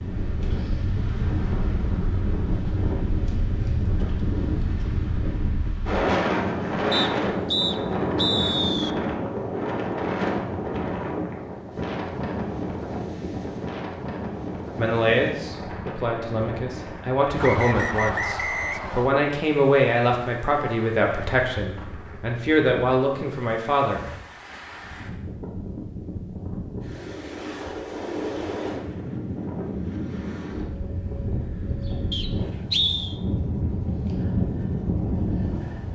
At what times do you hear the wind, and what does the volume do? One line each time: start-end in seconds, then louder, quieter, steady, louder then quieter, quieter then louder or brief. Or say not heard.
0.0-35.9 quieter then louder.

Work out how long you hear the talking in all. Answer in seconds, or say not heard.
9 s.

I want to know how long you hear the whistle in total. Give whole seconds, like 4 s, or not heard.
5 s.